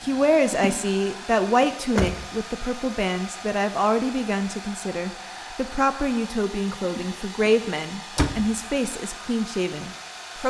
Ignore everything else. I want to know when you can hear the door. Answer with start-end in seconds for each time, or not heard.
1.6-2.2, 8.2-8.6.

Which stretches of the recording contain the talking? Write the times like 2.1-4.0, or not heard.
0.0-10.4.